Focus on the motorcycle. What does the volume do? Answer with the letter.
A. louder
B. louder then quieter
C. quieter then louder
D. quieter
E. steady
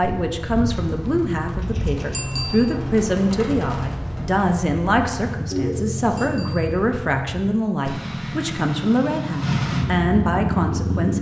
A.